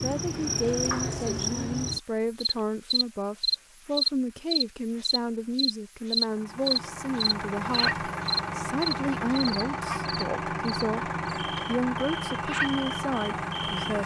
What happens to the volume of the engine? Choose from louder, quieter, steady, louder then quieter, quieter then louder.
steady.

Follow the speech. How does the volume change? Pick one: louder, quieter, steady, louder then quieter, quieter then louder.
steady.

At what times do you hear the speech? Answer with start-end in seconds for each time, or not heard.
0.0-14.0.